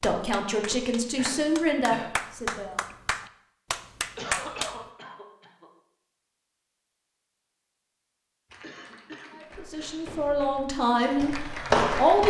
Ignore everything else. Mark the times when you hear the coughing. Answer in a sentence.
The coughing can be heard from 1.1 to 2.1 s, from 4.2 to 5.7 s and from 8.6 to 10.1 s.